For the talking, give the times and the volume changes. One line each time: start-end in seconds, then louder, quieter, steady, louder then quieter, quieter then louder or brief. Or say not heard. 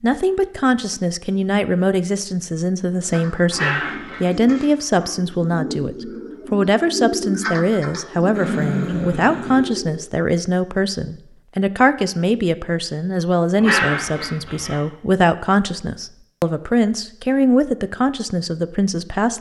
0.0-19.3 steady.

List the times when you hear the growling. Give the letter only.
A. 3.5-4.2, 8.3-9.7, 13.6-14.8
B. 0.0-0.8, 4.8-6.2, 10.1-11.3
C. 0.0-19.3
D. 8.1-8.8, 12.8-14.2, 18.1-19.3
A.